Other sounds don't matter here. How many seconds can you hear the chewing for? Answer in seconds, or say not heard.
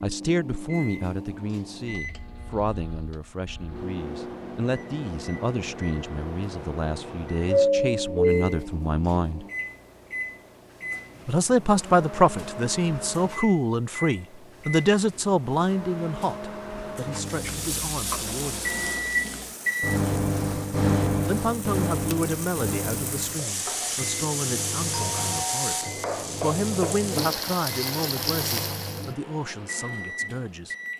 not heard.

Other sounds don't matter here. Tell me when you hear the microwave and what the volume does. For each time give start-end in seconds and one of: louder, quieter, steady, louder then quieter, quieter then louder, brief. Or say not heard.
0.0-30.9 louder then quieter.